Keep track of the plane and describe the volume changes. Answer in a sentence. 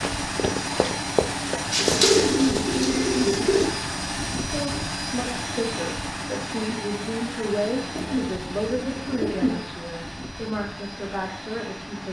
The loudness of the plane goes down.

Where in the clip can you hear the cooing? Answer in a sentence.
You can hear the cooing from 1.7 to 3.6 s and from 7.9 to 9.6 s.